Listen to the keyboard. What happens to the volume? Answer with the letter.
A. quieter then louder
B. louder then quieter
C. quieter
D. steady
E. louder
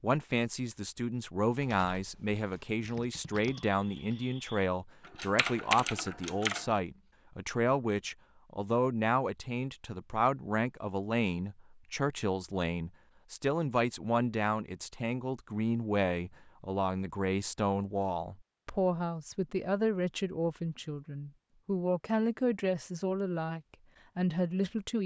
E.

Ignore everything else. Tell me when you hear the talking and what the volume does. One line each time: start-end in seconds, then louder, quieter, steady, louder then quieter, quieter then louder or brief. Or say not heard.
0.0-25.0 steady.